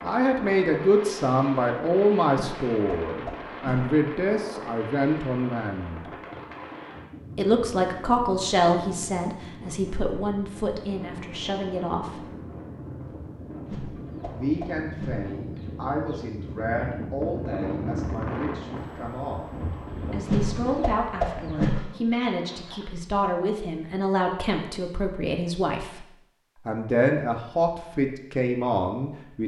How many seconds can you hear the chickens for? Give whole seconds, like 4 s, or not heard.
7 s.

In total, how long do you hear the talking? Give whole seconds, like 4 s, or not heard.
25 s.